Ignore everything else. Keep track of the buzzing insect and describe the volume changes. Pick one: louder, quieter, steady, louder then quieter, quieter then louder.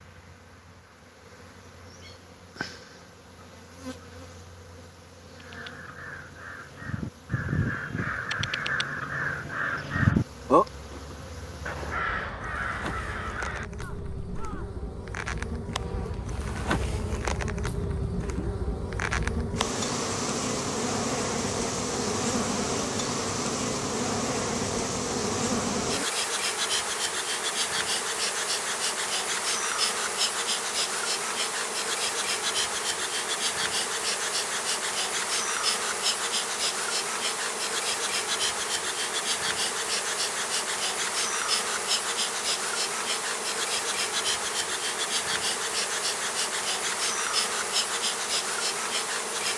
louder.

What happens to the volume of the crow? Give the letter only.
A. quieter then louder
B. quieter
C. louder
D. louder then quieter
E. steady
D.